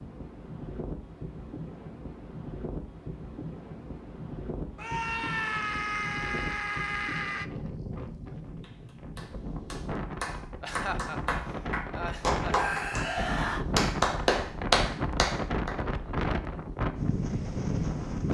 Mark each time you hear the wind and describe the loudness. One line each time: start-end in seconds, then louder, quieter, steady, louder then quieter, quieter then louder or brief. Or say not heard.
0.0-18.2 louder.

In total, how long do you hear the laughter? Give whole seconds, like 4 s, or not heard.
2 s.